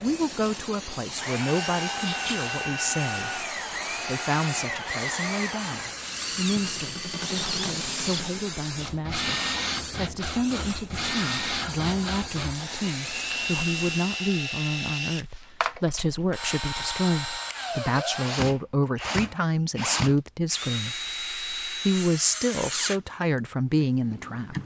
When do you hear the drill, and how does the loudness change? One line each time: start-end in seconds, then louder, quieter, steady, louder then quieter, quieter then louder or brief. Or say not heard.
0.0-24.6 steady.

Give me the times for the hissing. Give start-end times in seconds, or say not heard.
0.0-14.4.